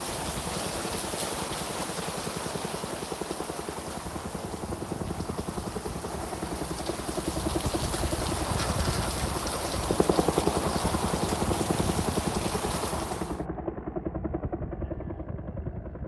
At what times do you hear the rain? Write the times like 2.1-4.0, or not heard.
0.0-13.4.